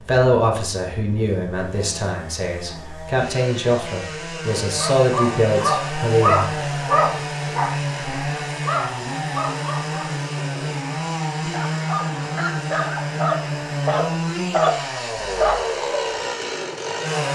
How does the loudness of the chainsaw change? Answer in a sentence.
The volume of the chainsaw goes up.